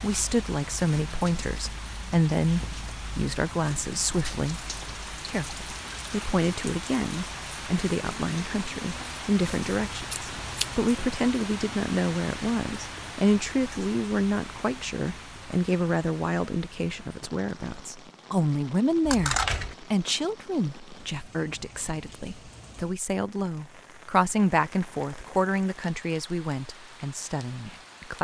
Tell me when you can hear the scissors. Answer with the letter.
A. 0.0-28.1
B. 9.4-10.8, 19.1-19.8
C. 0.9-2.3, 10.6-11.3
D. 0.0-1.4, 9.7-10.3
B.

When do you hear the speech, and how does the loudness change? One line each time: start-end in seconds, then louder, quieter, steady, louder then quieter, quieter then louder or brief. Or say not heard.
0.0-28.1 steady.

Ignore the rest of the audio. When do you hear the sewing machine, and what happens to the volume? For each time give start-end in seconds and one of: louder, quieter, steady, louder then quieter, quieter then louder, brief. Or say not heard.
not heard.